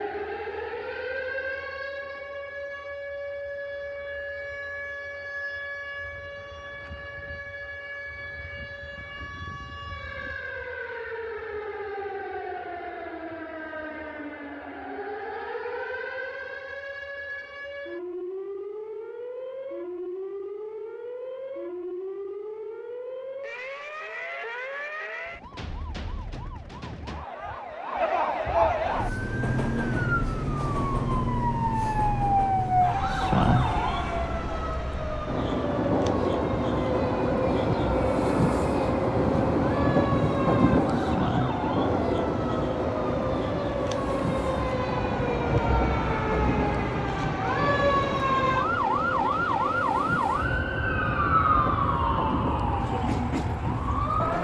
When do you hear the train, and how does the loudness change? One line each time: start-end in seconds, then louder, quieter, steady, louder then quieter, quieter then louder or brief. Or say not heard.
28.9-54.4 louder then quieter.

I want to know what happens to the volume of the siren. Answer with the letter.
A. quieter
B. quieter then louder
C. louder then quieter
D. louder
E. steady
D.